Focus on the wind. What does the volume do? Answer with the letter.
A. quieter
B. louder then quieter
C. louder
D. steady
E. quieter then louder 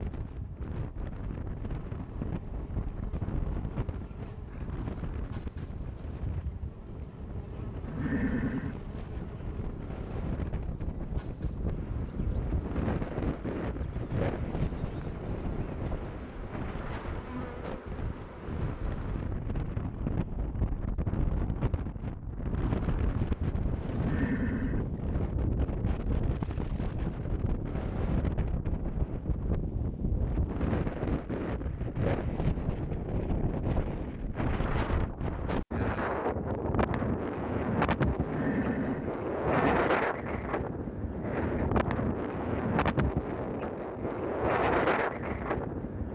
C.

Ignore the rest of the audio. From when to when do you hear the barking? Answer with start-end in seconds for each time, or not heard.
not heard.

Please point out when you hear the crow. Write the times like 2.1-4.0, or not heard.
not heard.